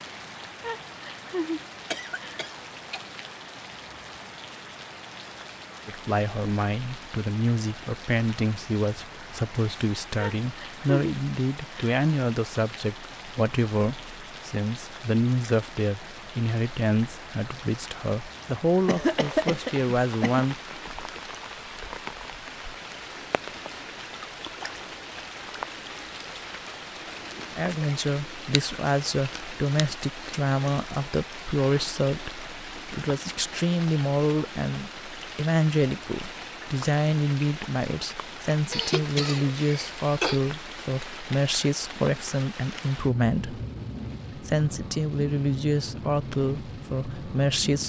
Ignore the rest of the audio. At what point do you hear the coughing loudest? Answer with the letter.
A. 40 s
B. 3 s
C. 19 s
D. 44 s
C.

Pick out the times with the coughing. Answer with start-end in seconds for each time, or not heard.
1.9-3.0, 18.9-20.4, 38.7-40.4.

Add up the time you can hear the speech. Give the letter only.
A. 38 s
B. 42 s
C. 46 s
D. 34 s
D.